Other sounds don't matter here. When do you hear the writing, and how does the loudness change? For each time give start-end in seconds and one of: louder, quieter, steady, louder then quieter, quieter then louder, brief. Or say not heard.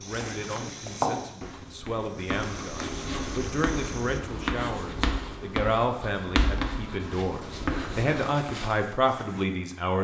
0.2-8.4 steady.